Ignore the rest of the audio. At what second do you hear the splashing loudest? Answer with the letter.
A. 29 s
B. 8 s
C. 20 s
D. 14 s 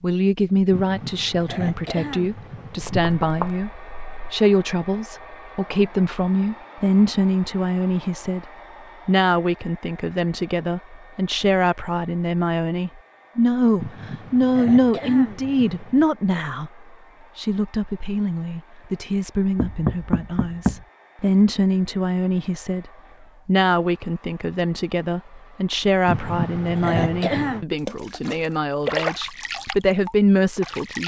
A.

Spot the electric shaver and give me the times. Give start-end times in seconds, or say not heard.
not heard.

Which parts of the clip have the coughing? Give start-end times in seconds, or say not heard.
0.7-3.2, 13.8-16.1, 26.1-27.6.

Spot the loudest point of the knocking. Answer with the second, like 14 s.
20 s.